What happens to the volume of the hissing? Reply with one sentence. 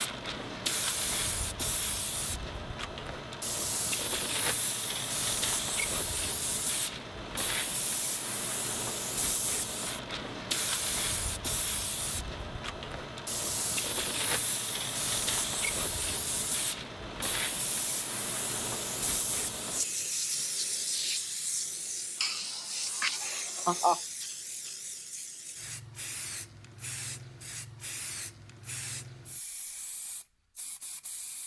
The volume of the hissing goes down.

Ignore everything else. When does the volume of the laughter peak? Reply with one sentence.
The volume of the laughter peaks at 24 seconds.